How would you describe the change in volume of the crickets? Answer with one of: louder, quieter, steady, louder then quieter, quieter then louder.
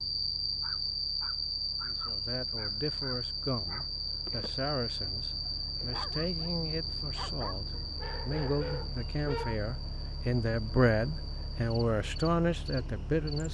quieter.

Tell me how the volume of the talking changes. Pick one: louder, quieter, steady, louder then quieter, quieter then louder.
louder.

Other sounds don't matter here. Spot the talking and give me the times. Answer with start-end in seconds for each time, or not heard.
1.9-13.4.